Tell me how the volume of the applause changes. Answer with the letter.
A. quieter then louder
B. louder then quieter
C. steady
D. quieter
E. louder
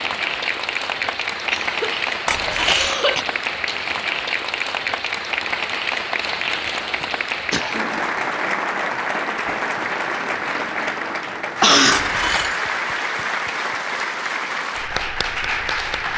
C.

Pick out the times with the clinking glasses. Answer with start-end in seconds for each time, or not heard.
2.2-3.0, 11.9-12.6.